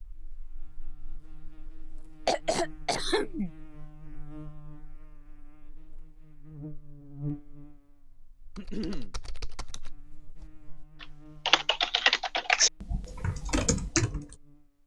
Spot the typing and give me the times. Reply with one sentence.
The typing can be heard from 8.6 to 14.3 s.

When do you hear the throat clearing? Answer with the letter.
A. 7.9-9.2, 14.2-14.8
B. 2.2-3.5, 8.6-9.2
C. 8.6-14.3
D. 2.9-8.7
B.